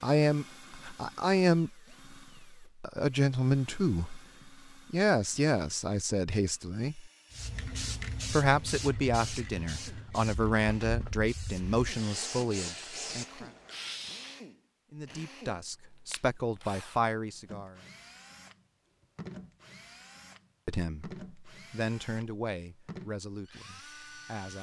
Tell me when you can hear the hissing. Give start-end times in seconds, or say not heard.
7.3-14.4.